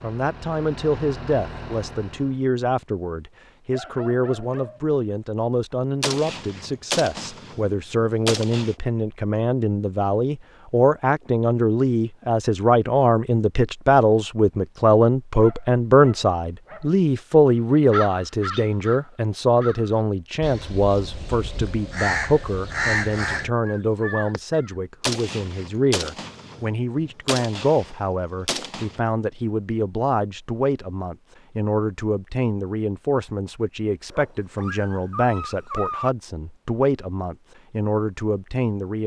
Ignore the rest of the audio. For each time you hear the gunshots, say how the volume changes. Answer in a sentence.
The gunshots can be heard briefly from 6.0 to 8.8 s; and from 25.0 to 29.0 s, getting quieter then louder.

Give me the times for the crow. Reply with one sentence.
You can hear the crow from 17.9 to 24.7 s.